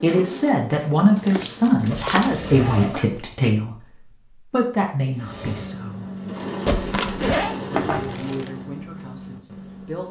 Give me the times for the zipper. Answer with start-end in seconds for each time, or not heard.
1.9-3.4, 6.7-7.5.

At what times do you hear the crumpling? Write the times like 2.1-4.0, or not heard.
1.1-3.1, 7.7-8.5.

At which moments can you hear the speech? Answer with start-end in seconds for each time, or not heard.
0.0-6.1, 7.5-10.0.